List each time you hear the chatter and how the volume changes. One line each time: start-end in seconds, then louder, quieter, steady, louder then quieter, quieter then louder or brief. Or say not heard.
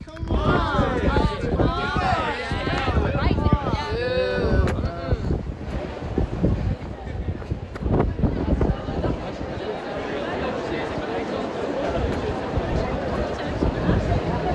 0.1-14.4 quieter then louder.